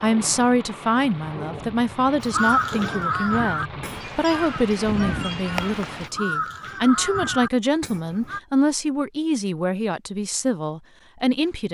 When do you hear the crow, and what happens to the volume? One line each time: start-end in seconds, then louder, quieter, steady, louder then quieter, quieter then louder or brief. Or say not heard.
2.2-8.4 quieter then louder.